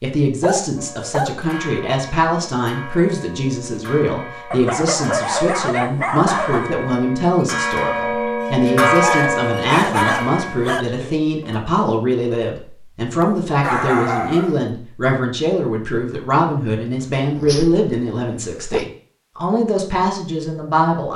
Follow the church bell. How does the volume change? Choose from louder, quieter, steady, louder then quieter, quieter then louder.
louder then quieter.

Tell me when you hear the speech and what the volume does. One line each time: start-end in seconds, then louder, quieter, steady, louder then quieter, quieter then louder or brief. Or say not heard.
0.0-21.1 steady.